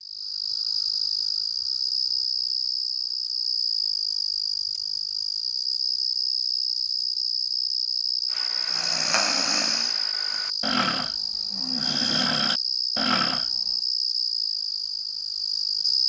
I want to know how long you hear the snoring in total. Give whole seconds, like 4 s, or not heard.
5 s.